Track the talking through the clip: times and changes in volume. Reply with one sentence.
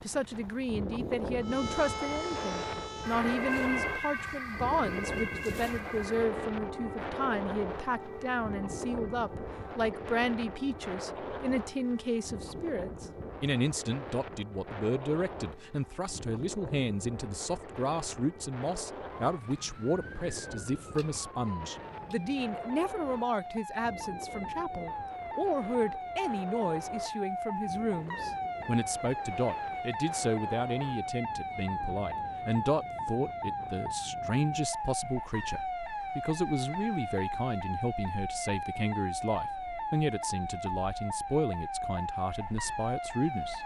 The talking can be heard from 0.0 to 43.6 s, at a steady volume.